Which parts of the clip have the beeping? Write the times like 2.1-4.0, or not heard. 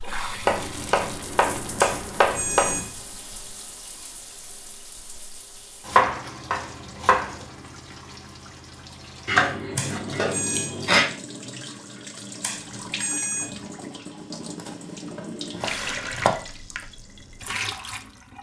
1.8-3.0, 9.8-10.7, 12.4-13.7.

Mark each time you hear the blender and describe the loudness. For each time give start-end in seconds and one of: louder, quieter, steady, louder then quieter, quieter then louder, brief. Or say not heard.
not heard.